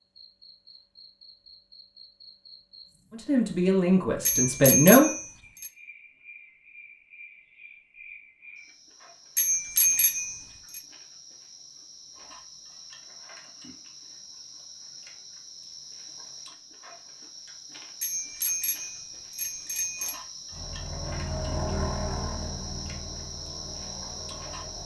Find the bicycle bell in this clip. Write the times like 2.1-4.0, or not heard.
4.2-5.7, 9.3-10.8, 18.0-20.1.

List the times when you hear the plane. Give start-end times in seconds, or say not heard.
20.4-24.8.